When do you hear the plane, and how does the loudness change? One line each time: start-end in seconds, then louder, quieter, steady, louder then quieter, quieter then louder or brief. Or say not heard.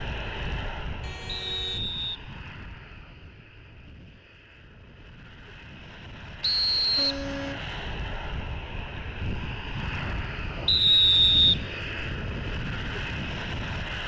0.0-14.0 quieter then louder.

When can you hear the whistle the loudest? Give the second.
11 s.